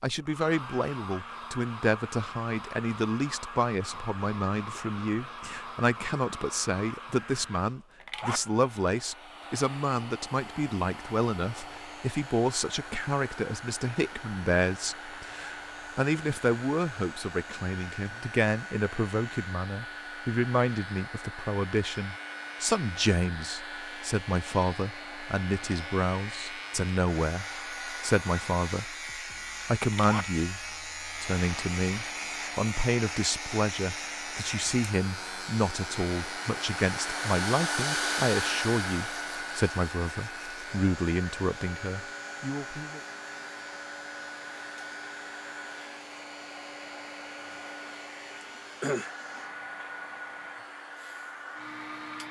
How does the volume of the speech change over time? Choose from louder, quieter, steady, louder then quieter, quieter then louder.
steady.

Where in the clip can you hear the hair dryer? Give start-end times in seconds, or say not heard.
0.0-52.2.